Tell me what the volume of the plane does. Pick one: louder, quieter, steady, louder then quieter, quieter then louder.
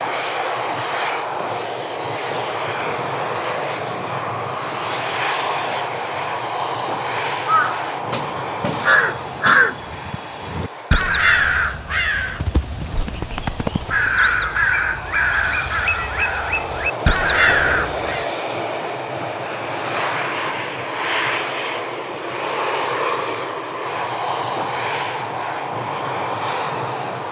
quieter then louder.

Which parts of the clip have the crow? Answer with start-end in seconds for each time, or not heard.
7.0-18.3.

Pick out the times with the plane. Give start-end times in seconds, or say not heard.
0.0-27.2.